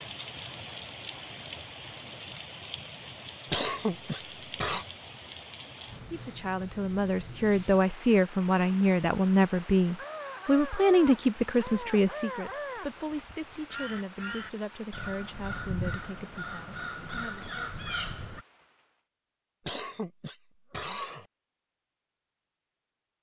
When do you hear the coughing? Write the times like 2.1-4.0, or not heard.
3.5-4.8, 19.6-21.2.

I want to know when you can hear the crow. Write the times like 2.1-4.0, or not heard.
9.9-18.4.